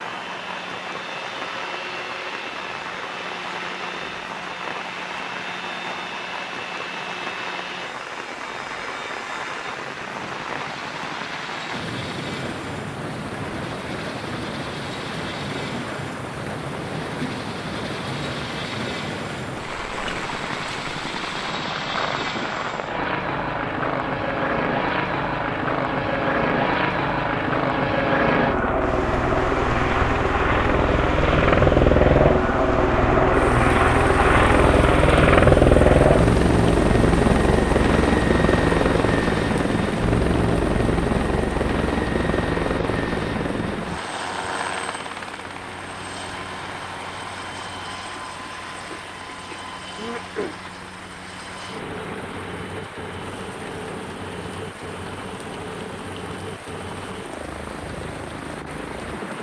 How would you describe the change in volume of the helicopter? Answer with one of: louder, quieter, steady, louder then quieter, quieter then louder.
louder then quieter.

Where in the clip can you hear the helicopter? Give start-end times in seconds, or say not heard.
0.0-59.3.